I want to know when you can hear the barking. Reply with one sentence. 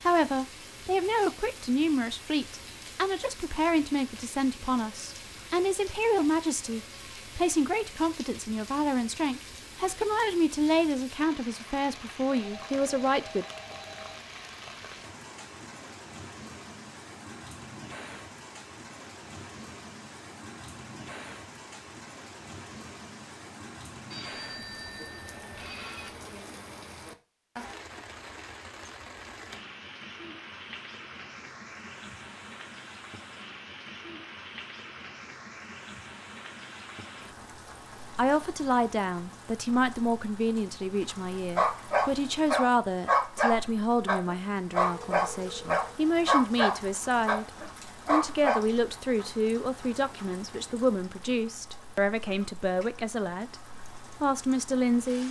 The barking can be heard from 41.5 to 48.6 s.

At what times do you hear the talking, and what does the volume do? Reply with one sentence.
You can hear the talking from 0.0 to 13.4 s, at a steady volume; from 38.1 to 53.5 s, at a steady volume; and briefly from 54.2 to 55.2 s.